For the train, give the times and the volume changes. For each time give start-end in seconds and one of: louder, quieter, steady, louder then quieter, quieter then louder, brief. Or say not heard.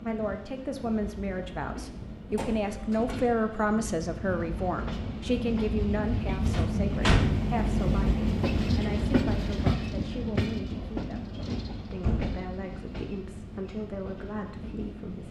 0.0-15.2 louder then quieter.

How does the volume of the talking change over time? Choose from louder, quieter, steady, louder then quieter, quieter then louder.
quieter.